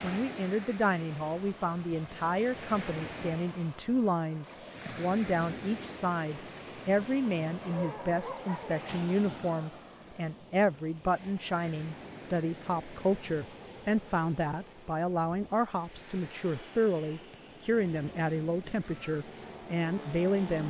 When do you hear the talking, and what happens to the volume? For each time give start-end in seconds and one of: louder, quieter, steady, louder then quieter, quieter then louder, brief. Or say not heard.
0.0-20.6 steady.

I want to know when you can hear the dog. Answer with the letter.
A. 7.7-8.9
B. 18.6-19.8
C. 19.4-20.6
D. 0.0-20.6
A.